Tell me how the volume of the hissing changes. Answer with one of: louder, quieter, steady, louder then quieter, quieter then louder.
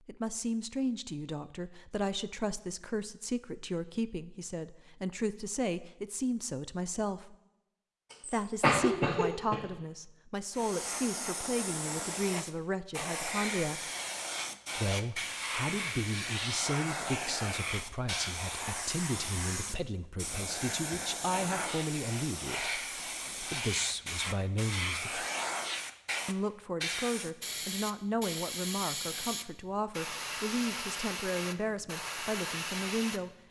steady.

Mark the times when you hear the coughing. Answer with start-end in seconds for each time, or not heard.
8.1-9.6.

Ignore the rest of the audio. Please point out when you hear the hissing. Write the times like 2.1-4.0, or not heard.
10.5-33.4.